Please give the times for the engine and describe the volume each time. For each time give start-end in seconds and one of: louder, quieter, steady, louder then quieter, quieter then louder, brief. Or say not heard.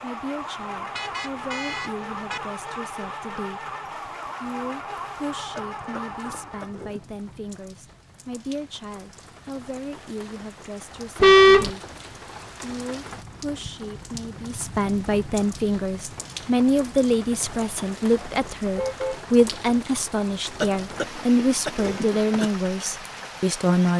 0.0-6.8 steady.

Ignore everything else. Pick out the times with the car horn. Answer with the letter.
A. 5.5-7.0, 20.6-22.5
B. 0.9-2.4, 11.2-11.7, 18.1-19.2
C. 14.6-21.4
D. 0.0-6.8
B.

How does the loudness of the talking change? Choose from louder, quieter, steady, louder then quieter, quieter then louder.
louder.